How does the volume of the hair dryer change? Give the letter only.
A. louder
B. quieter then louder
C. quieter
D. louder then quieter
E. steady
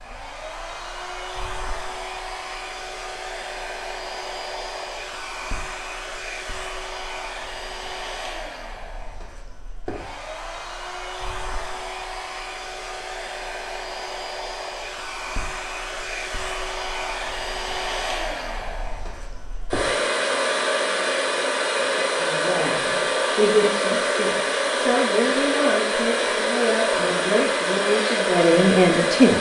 A.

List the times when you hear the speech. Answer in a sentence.
The speech can be heard from 22.1 to 29.3 s.